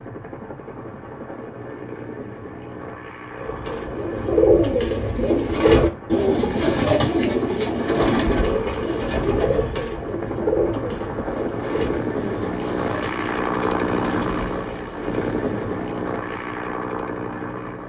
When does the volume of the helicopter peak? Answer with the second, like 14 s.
14 s.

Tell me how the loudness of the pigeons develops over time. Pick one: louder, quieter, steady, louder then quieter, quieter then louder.
quieter.